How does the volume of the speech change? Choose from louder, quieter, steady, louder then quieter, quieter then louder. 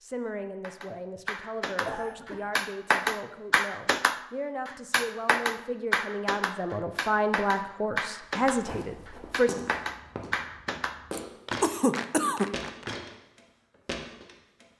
louder.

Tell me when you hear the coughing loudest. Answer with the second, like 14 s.
12 s.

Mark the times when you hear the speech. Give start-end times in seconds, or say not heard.
0.0-9.5.